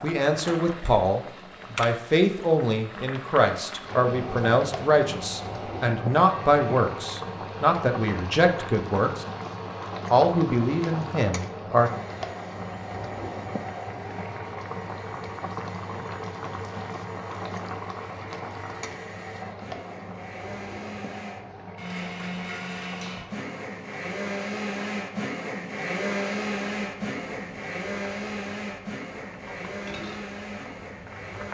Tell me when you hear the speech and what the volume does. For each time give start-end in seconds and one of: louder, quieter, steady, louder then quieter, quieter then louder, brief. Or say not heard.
0.0-9.2 steady
10.1-11.9 brief.